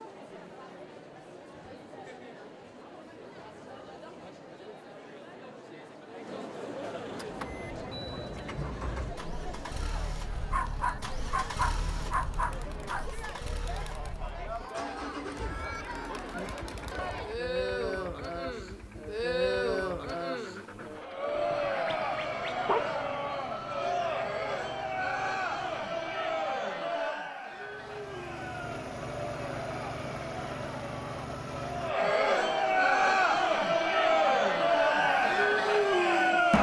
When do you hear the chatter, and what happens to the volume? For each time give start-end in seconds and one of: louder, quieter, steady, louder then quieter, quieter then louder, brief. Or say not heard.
0.0-36.5 louder.